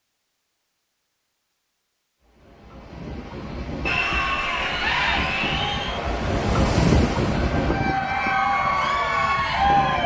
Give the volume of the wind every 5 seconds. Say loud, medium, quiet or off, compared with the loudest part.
medium, loud.